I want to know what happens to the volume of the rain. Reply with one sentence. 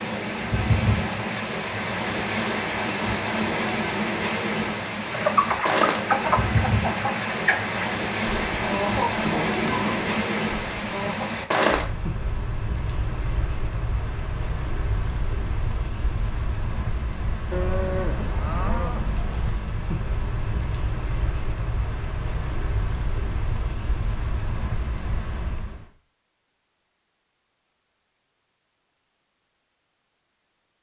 The loudness of the rain goes down.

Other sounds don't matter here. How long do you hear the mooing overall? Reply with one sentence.
The mooing can be heard for 2 seconds in total.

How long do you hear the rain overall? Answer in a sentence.
The rain can be heard for 26 seconds in total.